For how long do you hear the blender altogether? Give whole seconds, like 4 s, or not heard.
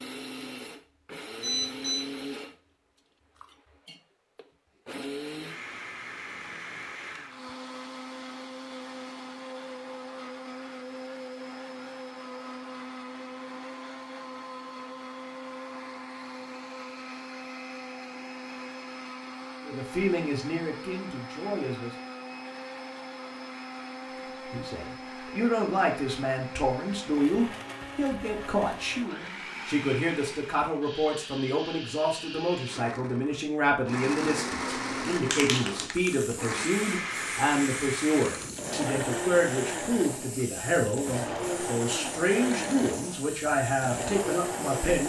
45 s.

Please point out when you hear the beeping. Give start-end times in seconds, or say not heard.
1.4-2.0.